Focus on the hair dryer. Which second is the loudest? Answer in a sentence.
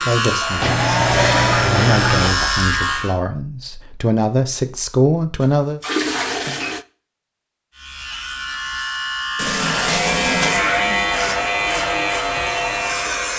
The loudest moment of the hair dryer is at 1 second.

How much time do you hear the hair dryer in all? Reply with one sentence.
You can hear the hair dryer for 6 seconds altogether.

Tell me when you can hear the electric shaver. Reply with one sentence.
You can hear the electric shaver from 0.0 to 3.1 s and from 7.7 to 13.3 s.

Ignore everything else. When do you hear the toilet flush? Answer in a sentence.
The toilet flush can be heard from 0.6 to 2.4 s, from 5.4 to 6.8 s and from 9.3 to 10.7 s.